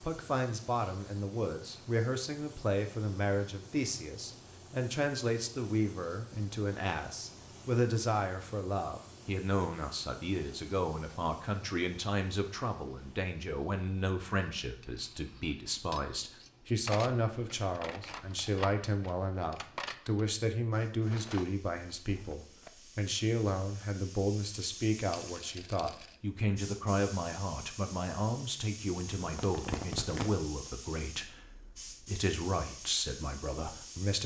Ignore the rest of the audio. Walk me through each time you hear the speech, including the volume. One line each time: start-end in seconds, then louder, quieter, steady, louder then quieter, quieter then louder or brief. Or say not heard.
0.0-34.2 steady.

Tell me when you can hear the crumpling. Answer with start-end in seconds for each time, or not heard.
28.9-30.3.